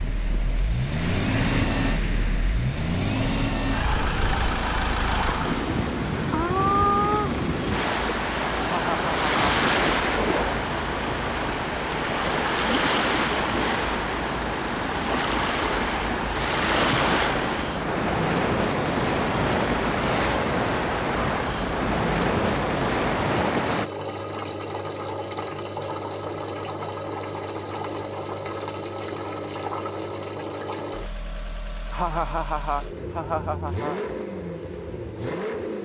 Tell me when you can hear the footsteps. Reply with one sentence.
The footsteps can't be heard in this clip.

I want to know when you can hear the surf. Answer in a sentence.
You can hear the surf from 0.0 to 23.9 s.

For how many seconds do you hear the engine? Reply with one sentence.
The engine can be heard for 36 seconds in total.